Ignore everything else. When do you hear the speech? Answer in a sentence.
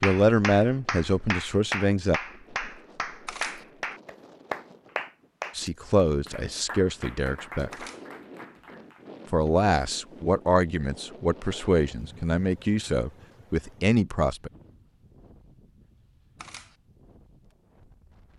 You can hear the speech from 0.0 to 2.2 s, from 5.5 to 7.7 s and from 9.3 to 14.5 s.